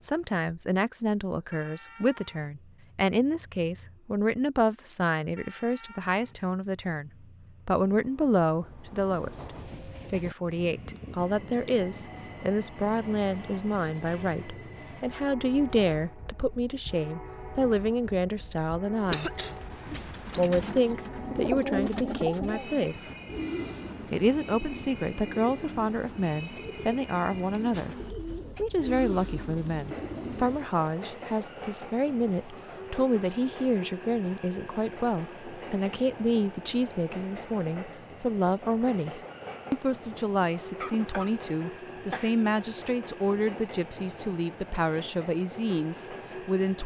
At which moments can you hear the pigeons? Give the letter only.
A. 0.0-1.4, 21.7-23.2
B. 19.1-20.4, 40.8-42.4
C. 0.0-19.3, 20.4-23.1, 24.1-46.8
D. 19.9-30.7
D.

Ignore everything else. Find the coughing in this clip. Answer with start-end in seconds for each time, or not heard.
19.1-20.4, 40.8-42.4.